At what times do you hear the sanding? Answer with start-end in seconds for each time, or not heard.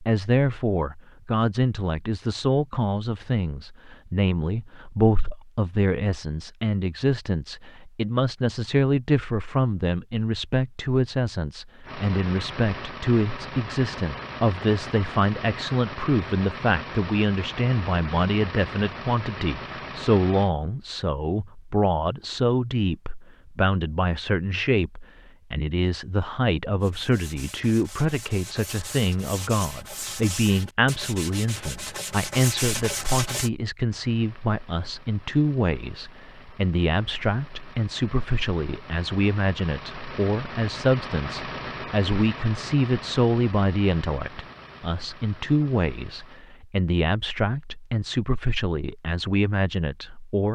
26.8-33.5.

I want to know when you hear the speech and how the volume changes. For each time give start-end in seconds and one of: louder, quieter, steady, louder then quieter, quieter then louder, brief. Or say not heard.
0.0-50.4 steady.